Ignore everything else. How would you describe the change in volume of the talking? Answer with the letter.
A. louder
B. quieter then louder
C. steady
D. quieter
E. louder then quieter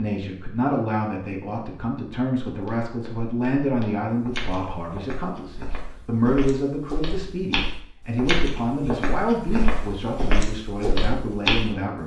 C.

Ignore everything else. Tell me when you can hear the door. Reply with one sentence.
The door can't be heard in this clip.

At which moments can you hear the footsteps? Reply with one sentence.
You can hear the footsteps from 2.5 to 12.0 s.